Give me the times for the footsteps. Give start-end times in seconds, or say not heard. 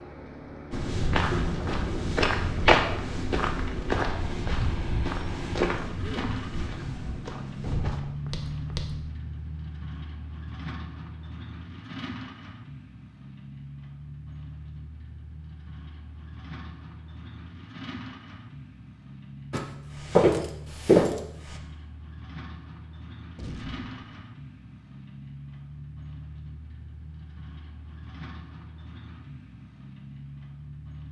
0.7-8.9, 19.5-21.6.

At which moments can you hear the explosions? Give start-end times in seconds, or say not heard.
7.6-8.2, 23.4-24.2.